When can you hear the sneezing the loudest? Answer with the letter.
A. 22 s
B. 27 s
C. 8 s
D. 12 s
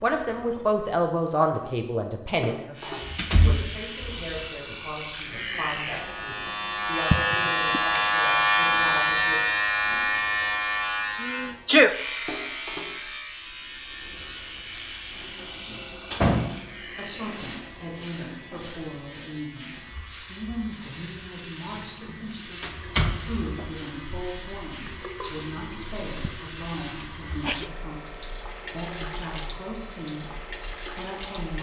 D.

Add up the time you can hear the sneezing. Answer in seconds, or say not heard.
3 s.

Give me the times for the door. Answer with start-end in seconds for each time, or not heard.
3.0-4.2, 15.7-16.6, 22.6-23.8.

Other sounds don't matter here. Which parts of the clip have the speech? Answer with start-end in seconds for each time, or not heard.
0.0-9.5, 16.8-31.5.